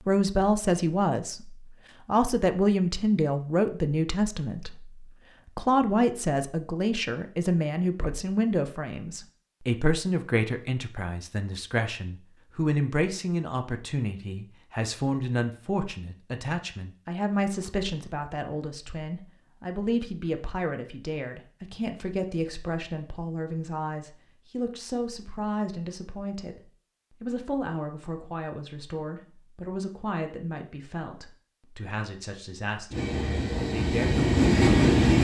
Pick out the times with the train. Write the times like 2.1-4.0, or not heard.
32.9-35.2.